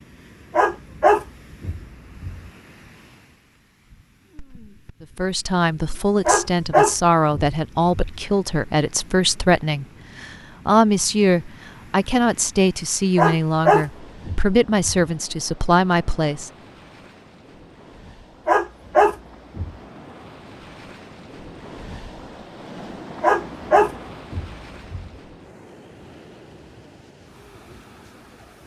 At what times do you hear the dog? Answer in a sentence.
The dog can be heard from 0.5 to 2.4 s, from 6.2 to 8.1 s, from 13.2 to 15.1 s, from 18.4 to 19.8 s and from 23.2 to 25.1 s.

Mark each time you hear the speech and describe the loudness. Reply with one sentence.
You can hear the speech from 5.0 to 16.5 s, at a steady volume.